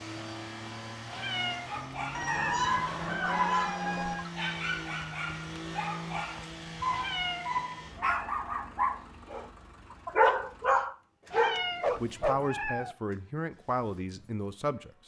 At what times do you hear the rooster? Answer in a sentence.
You can hear the rooster from 2.1 to 4.2 s.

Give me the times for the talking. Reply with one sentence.
The talking can be heard from 12.0 to 14.9 s.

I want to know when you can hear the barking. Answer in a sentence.
You can hear the barking from 1.6 to 12.4 s.